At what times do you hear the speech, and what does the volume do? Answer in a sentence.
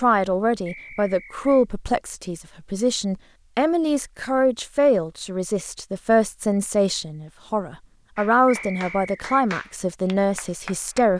The speech can be heard from 0.0 to 11.1 s, at a steady volume.